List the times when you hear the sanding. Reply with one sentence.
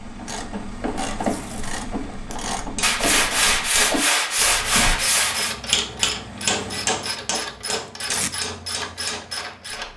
You can hear the sanding from 2.8 to 5.5 s.